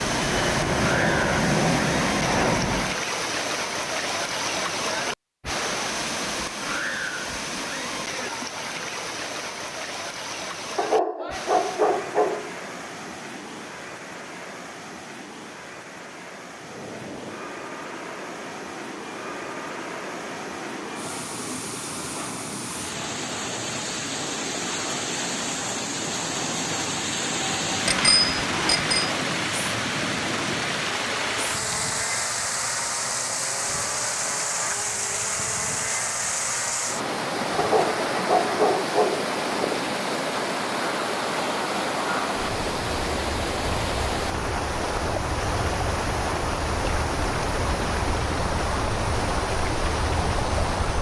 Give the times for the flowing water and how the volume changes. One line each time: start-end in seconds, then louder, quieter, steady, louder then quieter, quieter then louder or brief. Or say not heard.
0.0-50.9 quieter then louder.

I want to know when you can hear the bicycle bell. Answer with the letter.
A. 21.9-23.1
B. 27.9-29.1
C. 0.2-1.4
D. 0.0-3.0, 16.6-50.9
B.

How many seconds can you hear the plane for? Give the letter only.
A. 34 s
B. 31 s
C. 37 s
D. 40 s
C.